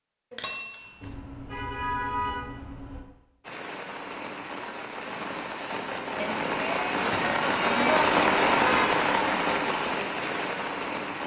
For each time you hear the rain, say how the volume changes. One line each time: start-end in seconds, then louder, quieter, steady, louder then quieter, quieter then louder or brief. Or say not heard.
3.4-11.2 louder then quieter.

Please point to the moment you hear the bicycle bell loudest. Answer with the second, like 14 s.
8 s.